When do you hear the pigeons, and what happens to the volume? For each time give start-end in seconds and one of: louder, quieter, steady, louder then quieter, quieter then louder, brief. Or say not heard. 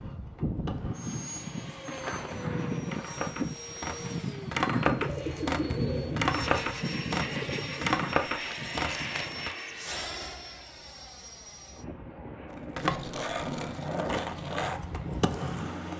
4.8-10.0 quieter.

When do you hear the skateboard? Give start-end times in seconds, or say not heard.
0.0-9.6, 12.8-15.9.